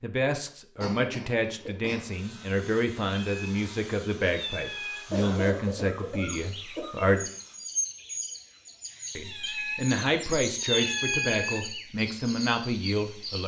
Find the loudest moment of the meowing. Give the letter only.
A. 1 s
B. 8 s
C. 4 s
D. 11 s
D.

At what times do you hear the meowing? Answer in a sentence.
The meowing can be heard from 3.2 to 5.1 s and from 9.2 to 11.7 s.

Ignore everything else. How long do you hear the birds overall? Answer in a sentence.
You can hear the birds for 7 seconds altogether.